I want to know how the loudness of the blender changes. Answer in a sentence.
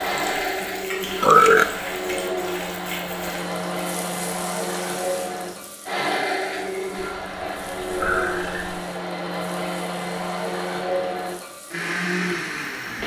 The volume of the blender stays about the same.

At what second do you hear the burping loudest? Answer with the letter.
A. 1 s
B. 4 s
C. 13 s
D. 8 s
A.